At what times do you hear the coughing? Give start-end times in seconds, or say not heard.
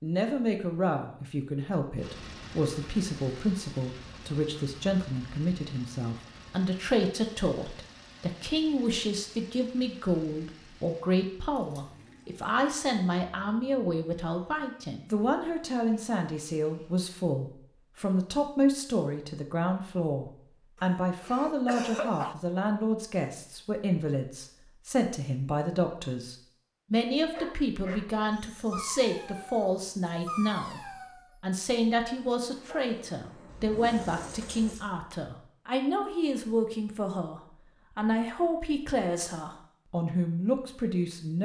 20.8-22.4.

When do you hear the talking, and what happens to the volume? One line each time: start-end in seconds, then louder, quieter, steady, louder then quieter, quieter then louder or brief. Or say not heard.
0.0-41.4 steady.